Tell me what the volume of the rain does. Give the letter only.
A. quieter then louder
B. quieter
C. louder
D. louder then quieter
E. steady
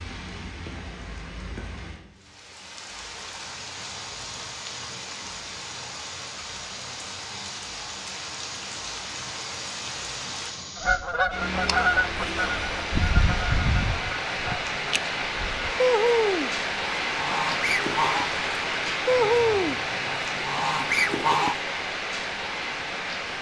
C.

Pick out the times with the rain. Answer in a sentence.
You can hear the rain from 0.0 to 23.3 s.